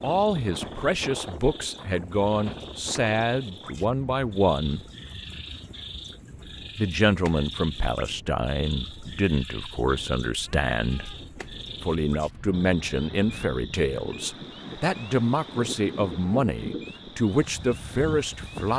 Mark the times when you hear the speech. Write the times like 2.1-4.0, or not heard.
0.0-4.8, 6.8-11.2, 11.8-18.7.